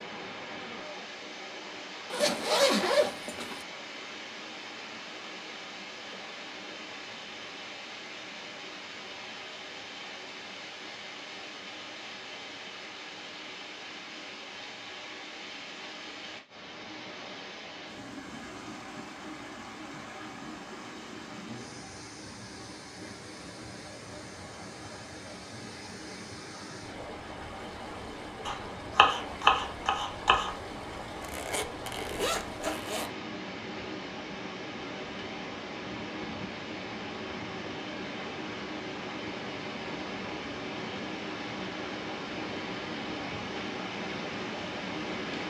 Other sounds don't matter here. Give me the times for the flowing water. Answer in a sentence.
The flowing water can be heard from 0.0 to 45.4 s.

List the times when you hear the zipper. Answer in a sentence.
The zipper can be heard from 2.1 to 3.6 s and from 31.2 to 33.1 s.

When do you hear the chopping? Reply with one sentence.
You can hear the chopping from 28.4 to 30.6 s.